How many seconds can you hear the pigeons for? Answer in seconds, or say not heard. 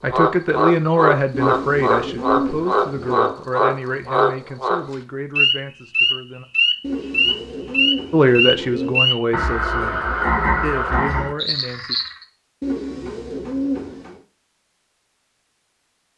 6 s.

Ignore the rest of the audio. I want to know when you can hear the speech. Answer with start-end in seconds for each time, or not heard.
0.0-6.5, 8.1-11.9.